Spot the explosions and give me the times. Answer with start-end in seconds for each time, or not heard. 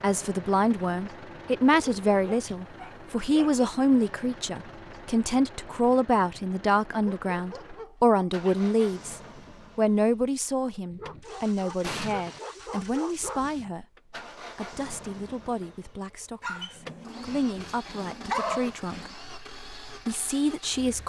11.8-12.4.